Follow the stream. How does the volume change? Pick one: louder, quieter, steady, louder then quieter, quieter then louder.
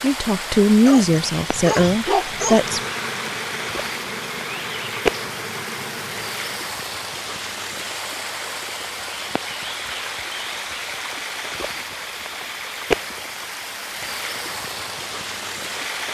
steady.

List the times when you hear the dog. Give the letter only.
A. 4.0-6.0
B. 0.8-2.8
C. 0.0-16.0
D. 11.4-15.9
B.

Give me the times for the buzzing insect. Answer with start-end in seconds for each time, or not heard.
2.2-6.7.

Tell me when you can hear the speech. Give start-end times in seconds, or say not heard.
0.0-2.8.